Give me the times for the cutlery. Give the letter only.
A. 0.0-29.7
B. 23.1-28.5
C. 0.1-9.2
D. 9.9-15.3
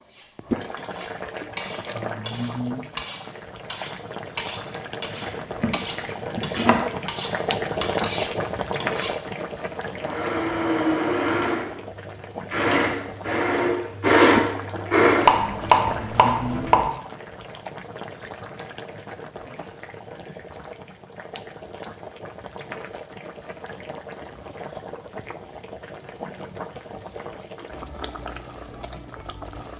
C.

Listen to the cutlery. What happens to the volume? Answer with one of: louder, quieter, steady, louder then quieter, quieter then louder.
louder.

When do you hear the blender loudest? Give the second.
15 s.